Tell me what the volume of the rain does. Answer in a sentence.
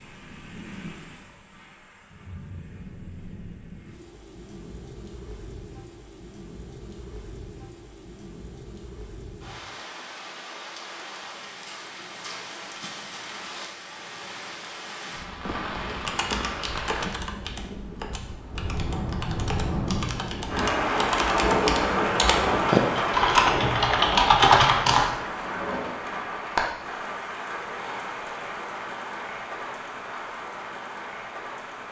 The volume of the rain goes up, then down.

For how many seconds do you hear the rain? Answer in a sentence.
You can hear the rain for 32 seconds altogether.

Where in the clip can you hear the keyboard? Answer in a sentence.
You can hear the keyboard from 15.8 to 25.1 s.